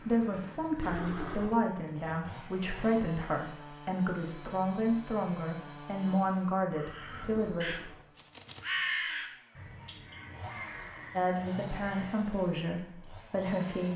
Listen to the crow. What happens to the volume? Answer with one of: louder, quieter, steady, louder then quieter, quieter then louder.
louder then quieter.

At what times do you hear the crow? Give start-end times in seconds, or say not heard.
6.7-12.2.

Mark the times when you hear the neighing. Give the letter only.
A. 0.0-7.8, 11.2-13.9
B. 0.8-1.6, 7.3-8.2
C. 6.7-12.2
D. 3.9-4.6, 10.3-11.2
B.